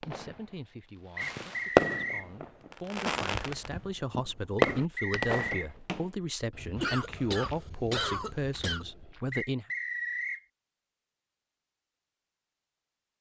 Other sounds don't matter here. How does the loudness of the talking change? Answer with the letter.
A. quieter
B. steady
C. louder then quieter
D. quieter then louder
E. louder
E.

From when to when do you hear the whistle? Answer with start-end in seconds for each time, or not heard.
1.1-2.3, 4.5-5.7, 9.3-10.4.